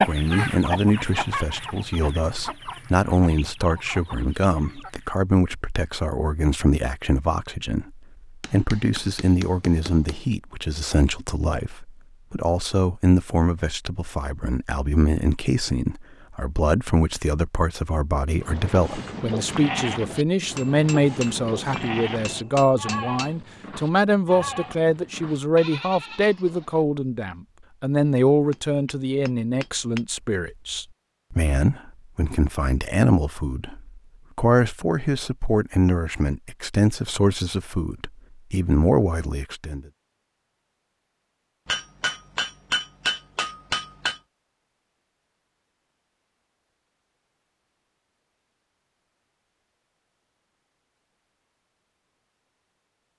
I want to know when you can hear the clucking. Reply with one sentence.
The clucking can be heard from 0.0 to 5.2 s.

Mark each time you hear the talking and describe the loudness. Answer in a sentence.
You can hear the talking from 0.0 to 39.9 s, at a steady volume.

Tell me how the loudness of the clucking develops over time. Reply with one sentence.
The volume of the clucking goes down.